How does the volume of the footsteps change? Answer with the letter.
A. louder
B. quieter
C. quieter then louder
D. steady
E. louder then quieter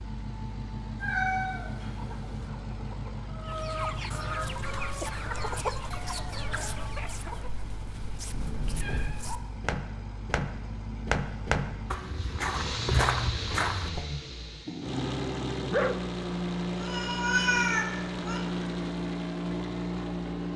A.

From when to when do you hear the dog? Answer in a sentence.
The dog can be heard from 14.7 to 16.0 s.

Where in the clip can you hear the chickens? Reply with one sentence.
You can hear the chickens from 1.9 to 7.5 s.